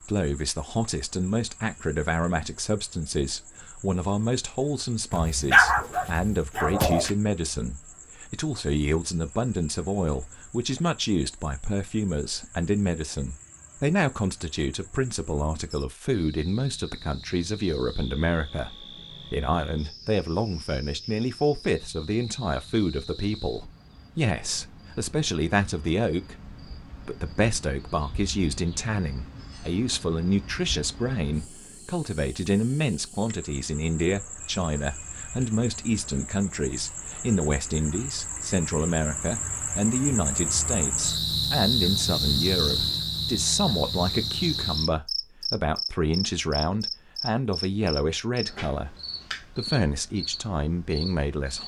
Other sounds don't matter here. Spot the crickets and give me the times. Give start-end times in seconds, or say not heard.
0.0-51.6.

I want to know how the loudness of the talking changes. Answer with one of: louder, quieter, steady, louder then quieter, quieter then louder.
steady.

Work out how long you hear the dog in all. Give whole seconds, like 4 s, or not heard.
2 s.